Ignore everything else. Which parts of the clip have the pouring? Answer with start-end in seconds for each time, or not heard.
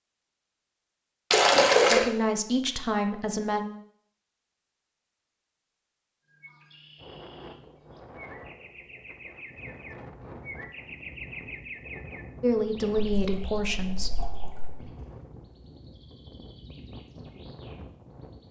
1.3-2.0, 13.2-14.8.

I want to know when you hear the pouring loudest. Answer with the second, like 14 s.
2 s.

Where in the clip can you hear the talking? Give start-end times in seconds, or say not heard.
1.9-3.6, 12.4-14.1.